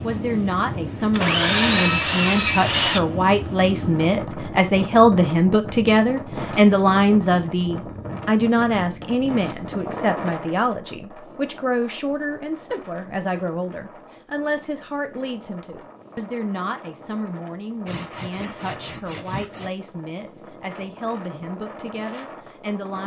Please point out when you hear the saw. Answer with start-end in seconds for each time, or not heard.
1.1-3.0, 17.9-19.7.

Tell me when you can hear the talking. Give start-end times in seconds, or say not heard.
0.0-23.0.